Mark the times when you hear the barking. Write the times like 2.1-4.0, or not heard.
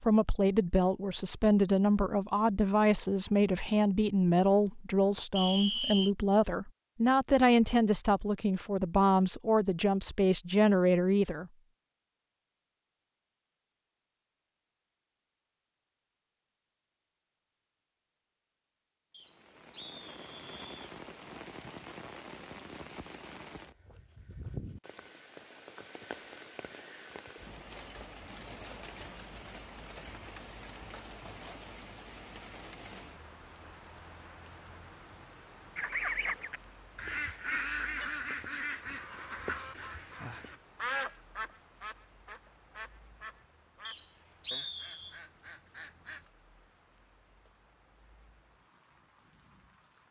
not heard.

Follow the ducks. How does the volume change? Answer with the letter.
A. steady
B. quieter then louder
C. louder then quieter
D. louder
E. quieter
E.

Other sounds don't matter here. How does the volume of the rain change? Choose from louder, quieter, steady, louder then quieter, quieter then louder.
quieter.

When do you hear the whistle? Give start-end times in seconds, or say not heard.
5.3-6.1, 19.1-20.7, 43.9-45.2.